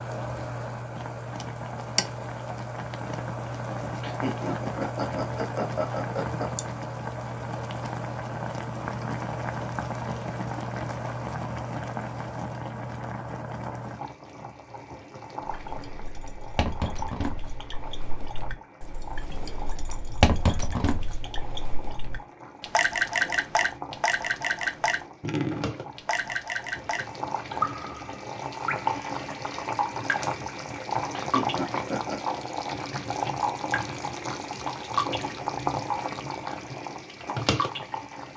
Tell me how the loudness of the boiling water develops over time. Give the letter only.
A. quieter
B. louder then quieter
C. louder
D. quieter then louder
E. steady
D.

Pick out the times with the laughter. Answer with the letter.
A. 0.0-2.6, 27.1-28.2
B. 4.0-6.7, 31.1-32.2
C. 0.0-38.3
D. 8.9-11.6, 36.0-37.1
B.